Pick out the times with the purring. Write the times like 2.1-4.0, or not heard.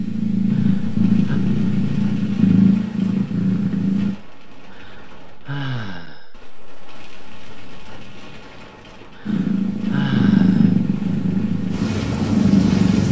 0.0-4.2, 9.2-13.0.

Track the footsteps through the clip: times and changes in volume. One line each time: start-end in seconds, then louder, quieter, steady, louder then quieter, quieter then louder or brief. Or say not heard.
not heard.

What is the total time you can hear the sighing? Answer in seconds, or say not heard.
4 s.